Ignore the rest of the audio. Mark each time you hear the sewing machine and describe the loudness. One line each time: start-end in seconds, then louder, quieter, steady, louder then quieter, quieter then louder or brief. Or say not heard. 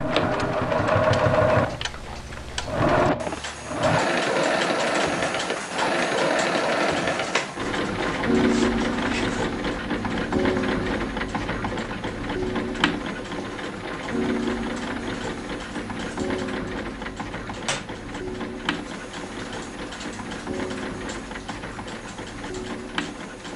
0.0-23.5 quieter.